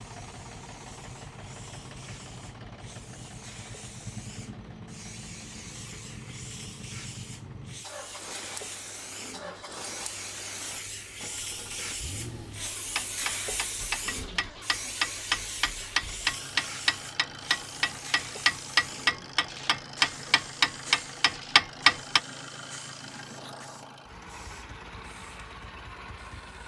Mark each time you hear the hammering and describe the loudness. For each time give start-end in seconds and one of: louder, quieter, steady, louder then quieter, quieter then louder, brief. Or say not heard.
12.6-22.2 louder.